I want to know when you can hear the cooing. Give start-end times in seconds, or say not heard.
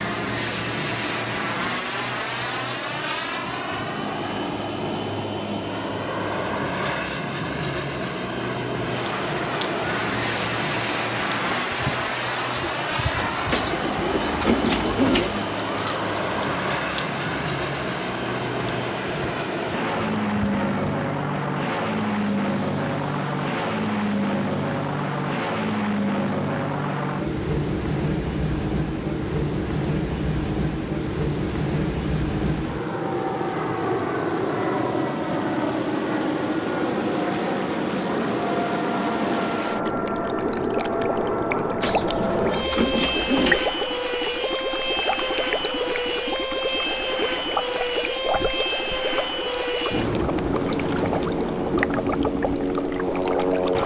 13.5-15.4, 41.8-43.7.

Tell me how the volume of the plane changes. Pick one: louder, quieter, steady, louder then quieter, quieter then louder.
steady.